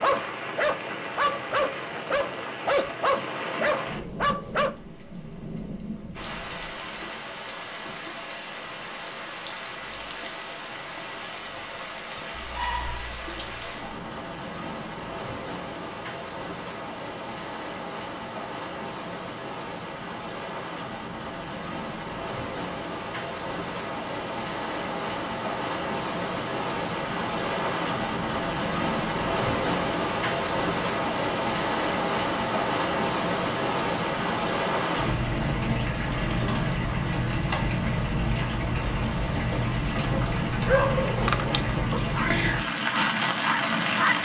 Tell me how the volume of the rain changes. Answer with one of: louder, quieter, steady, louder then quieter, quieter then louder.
louder.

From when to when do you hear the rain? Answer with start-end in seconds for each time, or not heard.
0.0-44.2.